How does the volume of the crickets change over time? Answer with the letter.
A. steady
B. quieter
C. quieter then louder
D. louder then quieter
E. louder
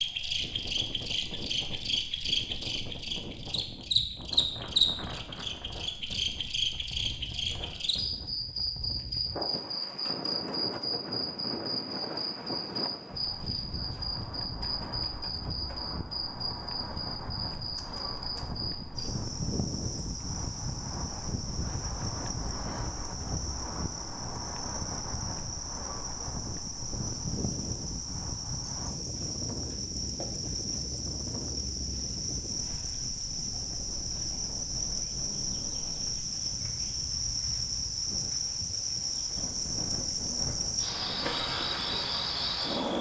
C.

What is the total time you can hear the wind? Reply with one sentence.
You can hear the wind for 43 seconds altogether.